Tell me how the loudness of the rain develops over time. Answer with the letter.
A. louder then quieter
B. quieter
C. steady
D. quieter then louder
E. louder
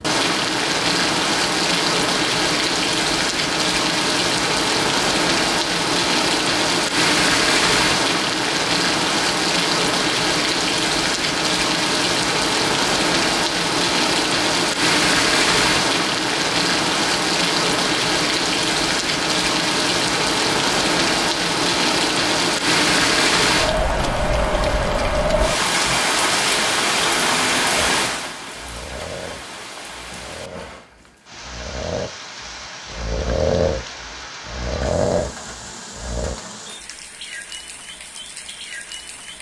B.